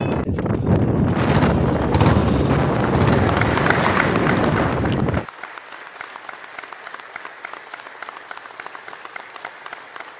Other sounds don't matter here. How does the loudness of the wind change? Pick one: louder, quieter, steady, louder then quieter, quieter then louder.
steady.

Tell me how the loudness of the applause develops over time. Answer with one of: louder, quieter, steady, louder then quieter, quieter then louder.
quieter.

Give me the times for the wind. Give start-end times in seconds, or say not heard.
0.0-5.2.